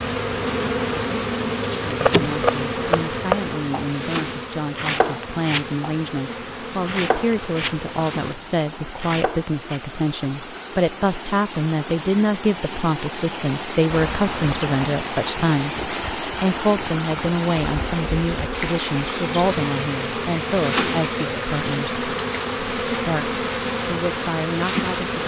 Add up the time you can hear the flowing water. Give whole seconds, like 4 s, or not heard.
25 s.